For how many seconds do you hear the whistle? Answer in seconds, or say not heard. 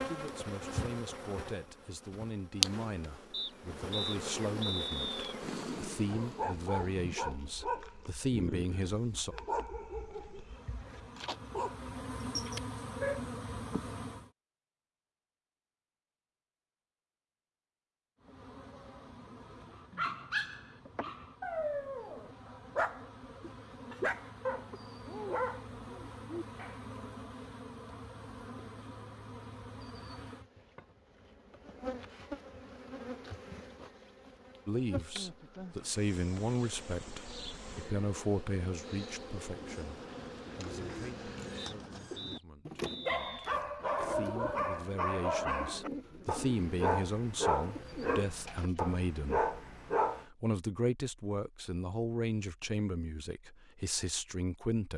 4 s.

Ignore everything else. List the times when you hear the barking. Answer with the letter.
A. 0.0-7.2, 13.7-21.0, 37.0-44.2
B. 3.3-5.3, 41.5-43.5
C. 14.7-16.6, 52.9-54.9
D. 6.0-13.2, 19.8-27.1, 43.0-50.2
D.